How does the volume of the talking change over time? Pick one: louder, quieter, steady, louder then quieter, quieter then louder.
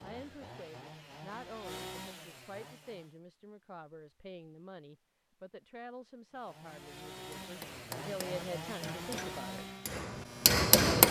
louder.